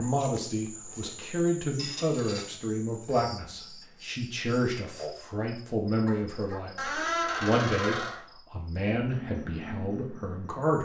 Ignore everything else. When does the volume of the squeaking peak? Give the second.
7 s.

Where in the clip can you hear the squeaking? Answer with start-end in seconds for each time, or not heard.
1.8-2.5, 6.8-8.2.